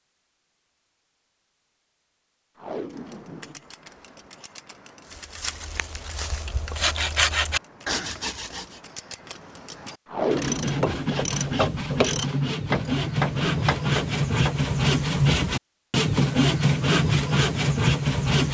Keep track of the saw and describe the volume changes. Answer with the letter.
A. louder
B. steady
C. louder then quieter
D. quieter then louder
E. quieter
A.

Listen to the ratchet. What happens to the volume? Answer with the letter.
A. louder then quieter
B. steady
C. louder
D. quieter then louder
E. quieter
C.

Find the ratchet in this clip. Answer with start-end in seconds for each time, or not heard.
2.9-14.7.